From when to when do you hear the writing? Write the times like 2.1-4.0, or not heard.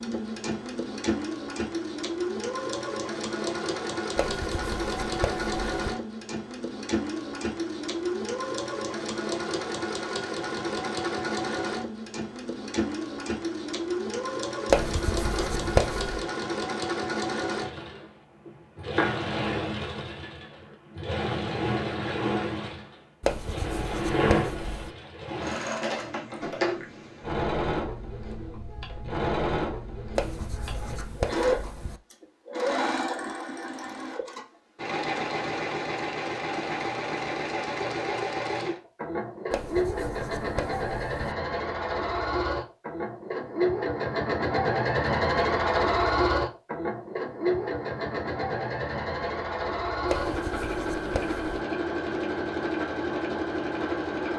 4.2-6.0, 14.7-16.2, 23.2-24.9, 30.1-32.0, 39.5-41.3, 50.0-51.5.